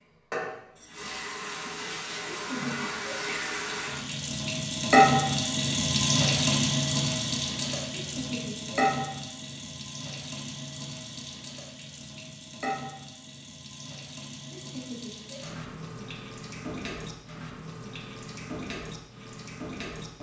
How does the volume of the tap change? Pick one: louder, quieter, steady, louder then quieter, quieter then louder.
louder then quieter.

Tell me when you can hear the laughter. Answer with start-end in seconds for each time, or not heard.
2.3-3.1, 7.9-8.8, 14.5-15.4.